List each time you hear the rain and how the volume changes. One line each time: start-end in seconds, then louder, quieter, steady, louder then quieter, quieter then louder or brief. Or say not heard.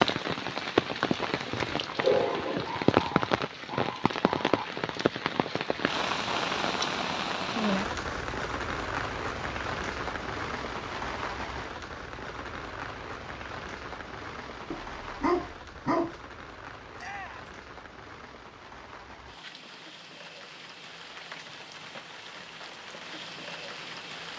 0.0-24.3 quieter.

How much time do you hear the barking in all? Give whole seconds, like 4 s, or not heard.
4 s.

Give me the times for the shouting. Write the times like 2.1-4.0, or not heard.
16.9-17.5.